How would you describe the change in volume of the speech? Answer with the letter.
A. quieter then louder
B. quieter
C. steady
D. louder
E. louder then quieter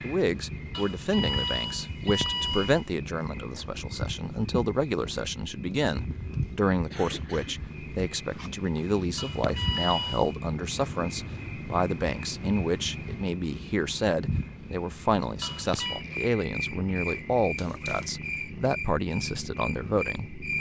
C.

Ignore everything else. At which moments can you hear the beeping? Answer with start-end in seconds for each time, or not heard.
0.7-2.9, 9.2-10.3, 15.4-16.1.